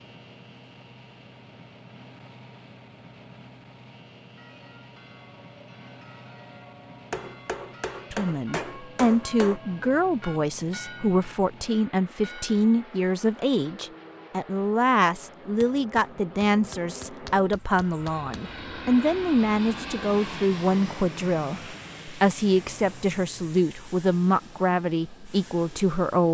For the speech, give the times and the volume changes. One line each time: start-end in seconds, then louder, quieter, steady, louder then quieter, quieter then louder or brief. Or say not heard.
8.1-26.2 steady.